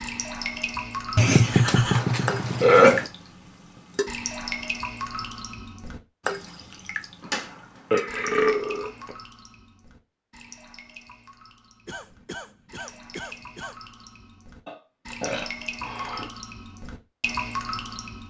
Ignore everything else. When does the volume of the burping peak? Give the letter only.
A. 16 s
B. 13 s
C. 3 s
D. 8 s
C.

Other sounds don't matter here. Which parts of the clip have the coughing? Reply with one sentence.
You can hear the coughing from 11.8 to 13.8 s.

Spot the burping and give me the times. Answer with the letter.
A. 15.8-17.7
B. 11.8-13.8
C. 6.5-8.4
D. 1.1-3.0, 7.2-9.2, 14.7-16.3
D.